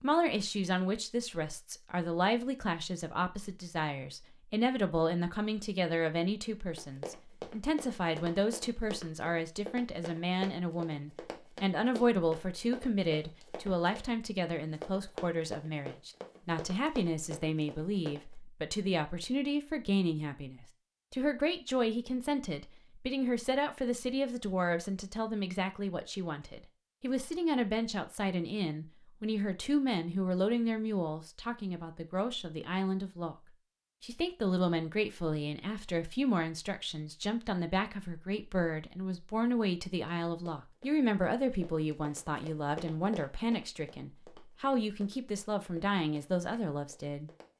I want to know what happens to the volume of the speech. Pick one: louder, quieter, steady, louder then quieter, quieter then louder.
steady.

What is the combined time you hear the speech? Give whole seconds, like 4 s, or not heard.
47 s.